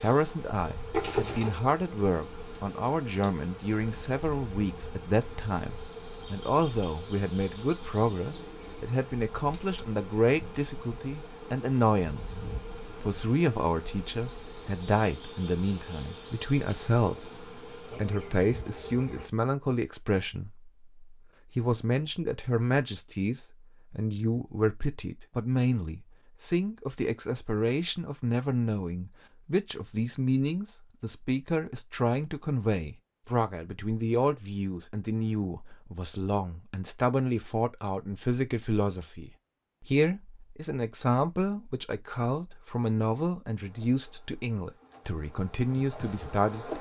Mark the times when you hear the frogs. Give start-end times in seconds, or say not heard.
not heard.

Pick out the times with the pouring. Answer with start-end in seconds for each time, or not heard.
0.9-1.6.